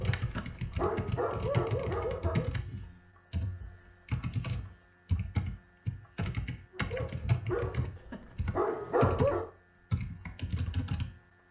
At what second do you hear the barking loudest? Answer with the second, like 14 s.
9 s.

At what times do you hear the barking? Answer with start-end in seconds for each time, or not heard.
0.0-2.5, 6.7-9.5.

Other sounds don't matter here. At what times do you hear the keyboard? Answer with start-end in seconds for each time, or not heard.
0.0-11.4.